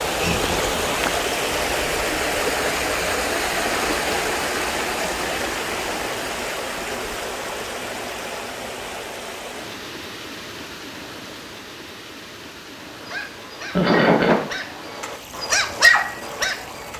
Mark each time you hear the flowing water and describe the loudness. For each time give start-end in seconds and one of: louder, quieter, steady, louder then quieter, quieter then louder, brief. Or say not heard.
0.0-16.9 quieter.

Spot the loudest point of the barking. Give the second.
16 s.